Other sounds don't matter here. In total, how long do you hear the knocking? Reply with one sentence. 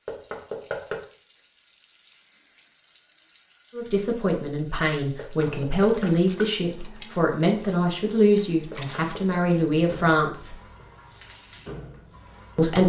You can hear the knocking for 3 seconds altogether.